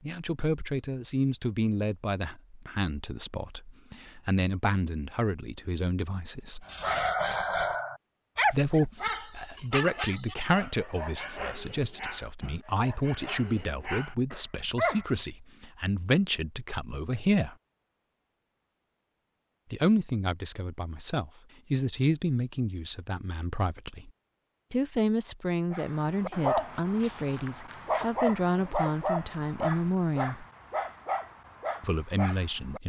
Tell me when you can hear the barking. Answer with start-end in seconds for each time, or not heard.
6.7-15.1, 25.7-32.8.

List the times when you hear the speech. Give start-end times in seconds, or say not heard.
0.0-6.7, 8.5-17.6, 19.7-24.1, 24.7-30.4, 31.8-32.8.